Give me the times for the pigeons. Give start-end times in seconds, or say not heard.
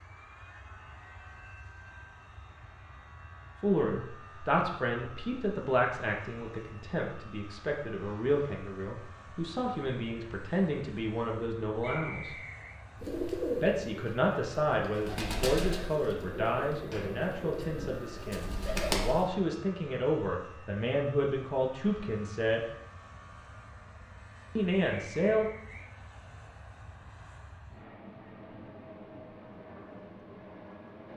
13.0-19.3.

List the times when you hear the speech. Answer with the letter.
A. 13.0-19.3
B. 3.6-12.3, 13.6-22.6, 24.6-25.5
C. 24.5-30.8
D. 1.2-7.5
B.